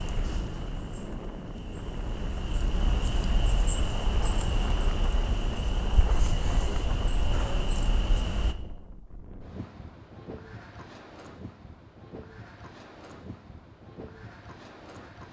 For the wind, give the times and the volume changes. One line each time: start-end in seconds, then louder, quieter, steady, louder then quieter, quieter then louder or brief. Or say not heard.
0.0-15.2 quieter.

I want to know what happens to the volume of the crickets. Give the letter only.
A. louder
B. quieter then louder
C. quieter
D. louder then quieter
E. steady
A.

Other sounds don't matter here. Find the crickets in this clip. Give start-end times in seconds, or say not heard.
0.0-8.6.